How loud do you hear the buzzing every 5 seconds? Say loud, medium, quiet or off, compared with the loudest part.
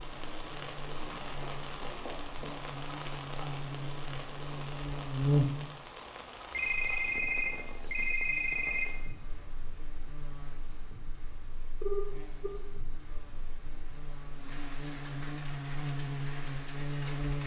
medium, loud, quiet, loud.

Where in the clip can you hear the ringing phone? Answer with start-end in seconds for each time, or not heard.
1.1-2.5, 6.5-9.1, 11.8-12.6.